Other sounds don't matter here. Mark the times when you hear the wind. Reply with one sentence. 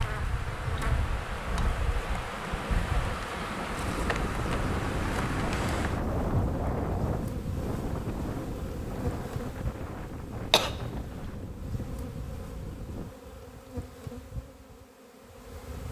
You can hear the wind from 0.0 to 13.2 s.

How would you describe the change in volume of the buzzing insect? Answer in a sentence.
The loudness of the buzzing insect goes down.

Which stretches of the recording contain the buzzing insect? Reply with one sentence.
The buzzing insect can be heard from 0.0 to 15.8 s.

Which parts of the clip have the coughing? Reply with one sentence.
You can hear the coughing from 10.5 to 11.3 s.